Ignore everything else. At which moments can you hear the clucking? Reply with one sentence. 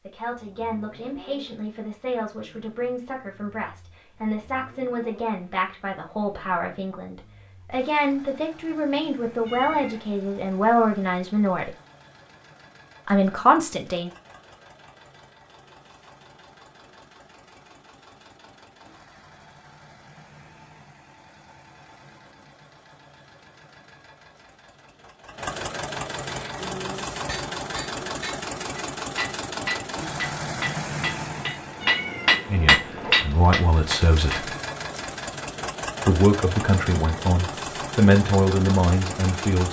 The clucking can't be heard in this clip.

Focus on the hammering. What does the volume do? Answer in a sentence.
The volume of the hammering goes up.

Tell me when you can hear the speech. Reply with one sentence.
You can hear the speech from 0.0 to 11.7 s, from 13.1 to 14.1 s, from 32.5 to 34.5 s and from 36.0 to 39.6 s.